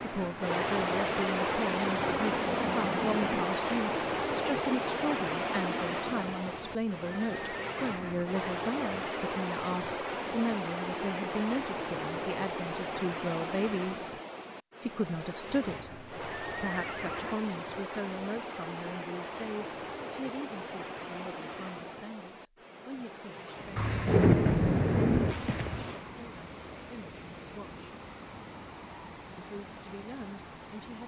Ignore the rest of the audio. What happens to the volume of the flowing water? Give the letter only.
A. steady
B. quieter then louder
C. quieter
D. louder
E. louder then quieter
C.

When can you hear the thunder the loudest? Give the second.
24 s.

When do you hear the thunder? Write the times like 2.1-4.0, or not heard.
0.5-3.5, 23.8-25.4.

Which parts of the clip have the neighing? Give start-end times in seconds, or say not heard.
6.5-8.2, 15.7-17.4, 25.2-26.1.